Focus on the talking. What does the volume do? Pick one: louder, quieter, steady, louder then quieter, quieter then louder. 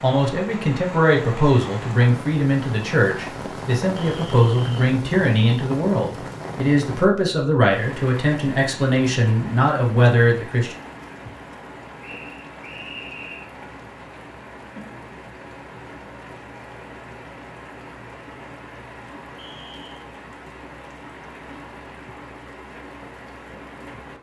steady.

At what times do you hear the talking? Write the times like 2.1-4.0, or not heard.
0.0-10.8.